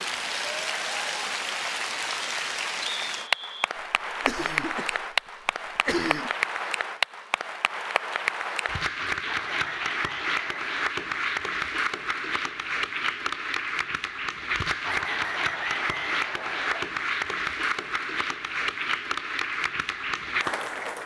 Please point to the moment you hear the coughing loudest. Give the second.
6 s.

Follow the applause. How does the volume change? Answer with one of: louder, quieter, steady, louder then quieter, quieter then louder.
steady.